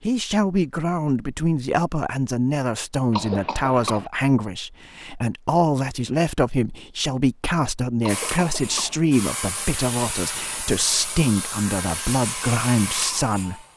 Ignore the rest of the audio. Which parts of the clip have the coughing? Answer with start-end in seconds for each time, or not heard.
3.1-4.1, 8.0-9.0.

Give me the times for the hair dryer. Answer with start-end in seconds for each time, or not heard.
8.1-13.7.